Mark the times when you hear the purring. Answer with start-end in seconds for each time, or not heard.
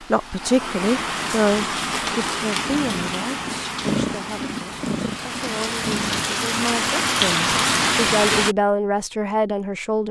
2.6-6.3.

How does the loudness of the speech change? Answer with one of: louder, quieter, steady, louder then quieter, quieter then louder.
quieter then louder.